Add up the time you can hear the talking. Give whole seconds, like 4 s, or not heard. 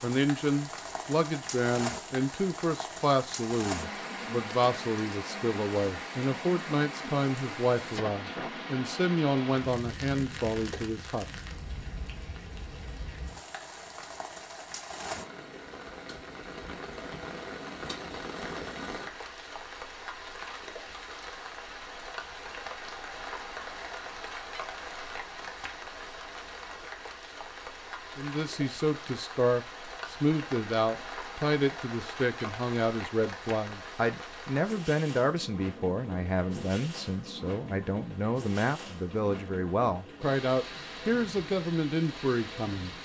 26 s.